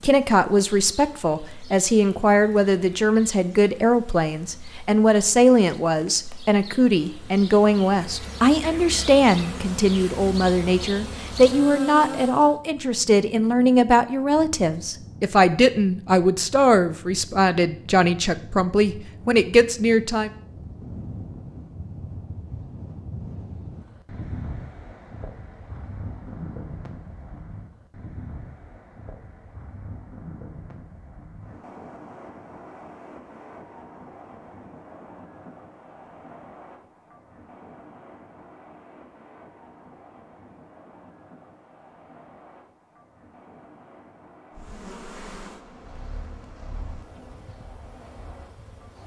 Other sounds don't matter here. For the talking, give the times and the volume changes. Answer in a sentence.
The talking can be heard from 0.0 to 20.3 s, at a steady volume.